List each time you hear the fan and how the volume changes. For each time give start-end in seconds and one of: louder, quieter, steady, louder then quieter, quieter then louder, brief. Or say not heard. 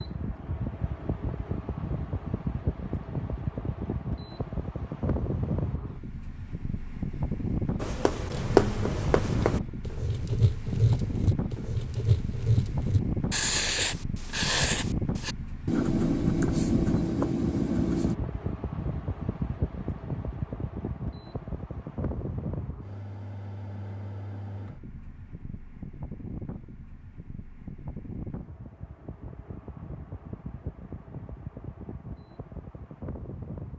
0.0-33.7 quieter.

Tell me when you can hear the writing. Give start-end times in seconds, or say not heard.
7.8-18.1.